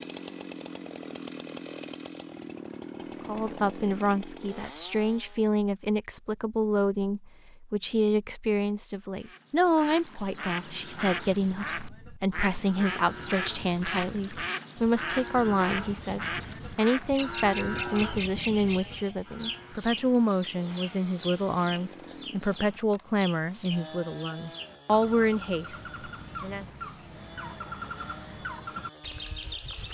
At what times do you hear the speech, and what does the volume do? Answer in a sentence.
You can hear the speech from 3.2 to 26.6 s, at a steady volume.